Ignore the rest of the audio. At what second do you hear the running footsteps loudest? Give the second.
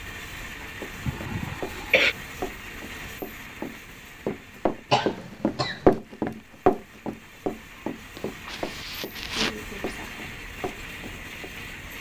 6 s.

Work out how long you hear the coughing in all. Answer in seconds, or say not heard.
4 s.